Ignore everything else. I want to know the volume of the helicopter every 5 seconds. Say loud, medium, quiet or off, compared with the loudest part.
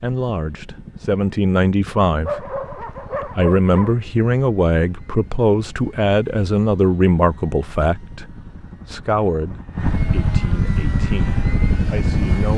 quiet, quiet, loud.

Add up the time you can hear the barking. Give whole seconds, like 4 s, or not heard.
2 s.